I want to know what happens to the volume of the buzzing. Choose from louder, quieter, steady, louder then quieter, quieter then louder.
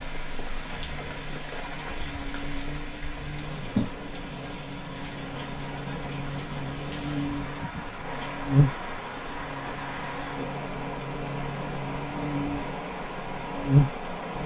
louder.